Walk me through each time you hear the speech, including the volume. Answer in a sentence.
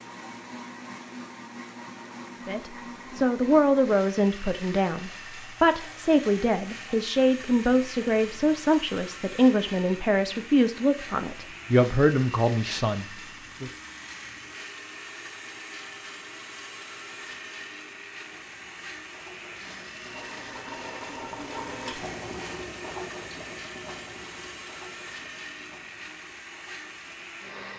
You can hear the speech from 2.5 to 13.7 s, at a steady volume.